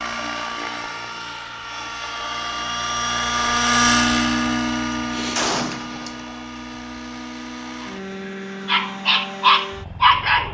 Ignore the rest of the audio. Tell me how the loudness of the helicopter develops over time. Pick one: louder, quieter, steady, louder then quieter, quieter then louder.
louder then quieter.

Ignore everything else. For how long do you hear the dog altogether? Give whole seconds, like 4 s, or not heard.
2 s.